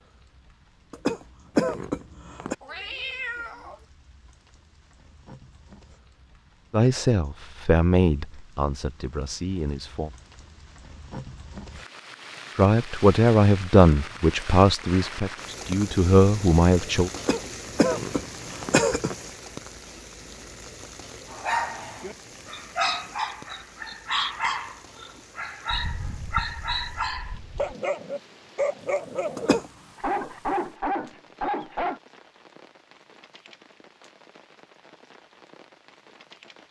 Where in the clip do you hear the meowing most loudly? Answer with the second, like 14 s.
3 s.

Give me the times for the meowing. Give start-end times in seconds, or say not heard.
2.6-3.9, 25.7-27.8.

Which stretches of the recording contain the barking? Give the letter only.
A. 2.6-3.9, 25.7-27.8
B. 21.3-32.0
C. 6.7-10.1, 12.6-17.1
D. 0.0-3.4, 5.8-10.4
B.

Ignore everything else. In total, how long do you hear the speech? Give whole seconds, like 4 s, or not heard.
8 s.